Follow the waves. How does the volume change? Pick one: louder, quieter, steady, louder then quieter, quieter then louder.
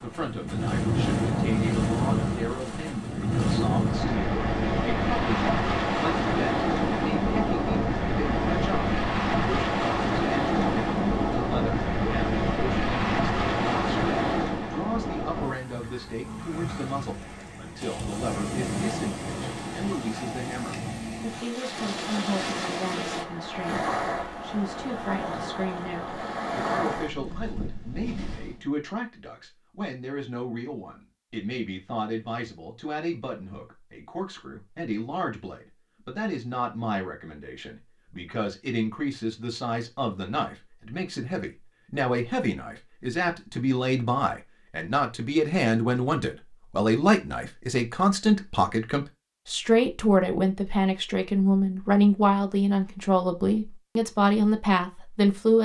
quieter.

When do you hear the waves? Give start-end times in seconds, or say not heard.
0.0-28.6.